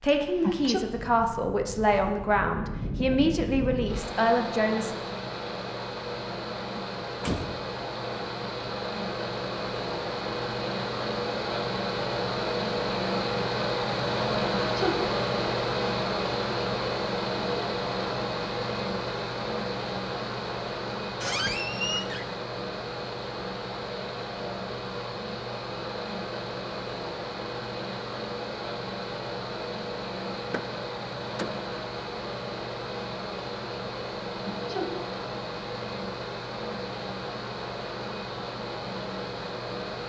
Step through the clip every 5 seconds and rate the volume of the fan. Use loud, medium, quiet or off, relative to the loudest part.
medium, medium, loud, loud, medium, medium, medium, medium.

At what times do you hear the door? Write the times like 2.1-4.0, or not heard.
6.8-7.7, 21.2-22.4, 30.4-31.6.